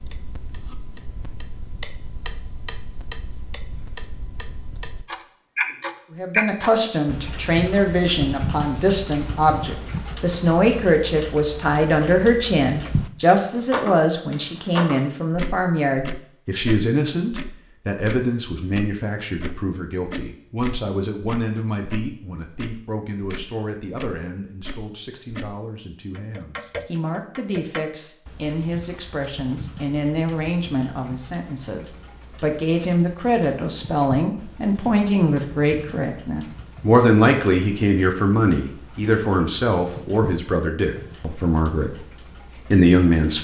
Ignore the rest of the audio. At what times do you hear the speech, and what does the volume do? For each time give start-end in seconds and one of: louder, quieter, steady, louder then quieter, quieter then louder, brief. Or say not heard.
6.1-42.0 quieter then louder
42.7-43.3 brief.